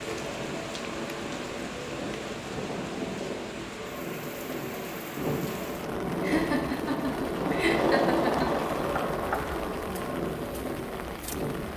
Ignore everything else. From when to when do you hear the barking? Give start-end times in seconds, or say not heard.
not heard.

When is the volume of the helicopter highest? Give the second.
8 s.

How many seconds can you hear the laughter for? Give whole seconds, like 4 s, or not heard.
2 s.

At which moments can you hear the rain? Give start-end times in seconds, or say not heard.
0.0-11.7.